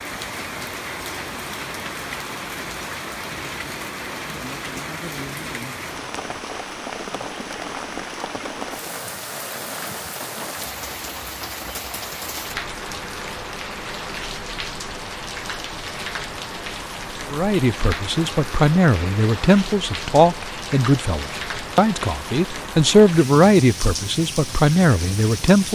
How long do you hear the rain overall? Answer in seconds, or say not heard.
26 s.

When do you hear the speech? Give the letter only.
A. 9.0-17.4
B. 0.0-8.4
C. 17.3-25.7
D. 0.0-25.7
C.